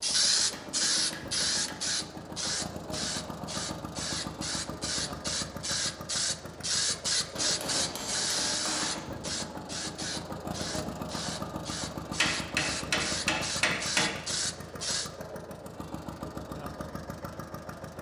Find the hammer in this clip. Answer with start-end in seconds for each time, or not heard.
0.5-1.8, 7.3-9.1, 12.2-14.1.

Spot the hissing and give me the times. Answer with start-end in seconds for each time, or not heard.
0.0-15.1.